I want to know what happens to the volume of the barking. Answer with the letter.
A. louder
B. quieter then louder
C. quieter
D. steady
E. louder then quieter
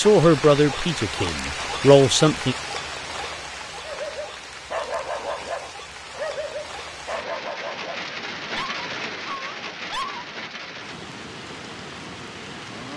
C.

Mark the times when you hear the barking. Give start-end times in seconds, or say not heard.
3.8-10.2.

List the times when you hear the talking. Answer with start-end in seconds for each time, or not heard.
0.0-2.5.